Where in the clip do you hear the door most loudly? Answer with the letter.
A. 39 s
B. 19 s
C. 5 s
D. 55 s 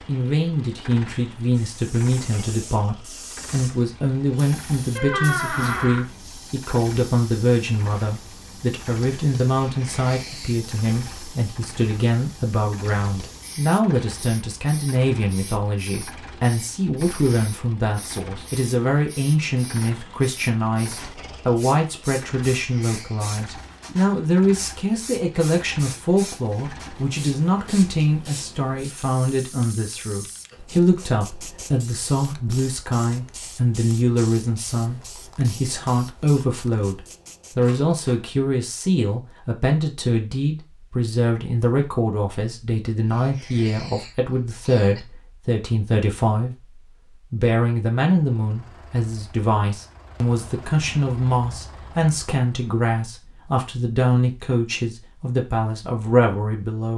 C.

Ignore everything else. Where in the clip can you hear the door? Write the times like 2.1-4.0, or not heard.
5.0-6.0, 37.6-38.2.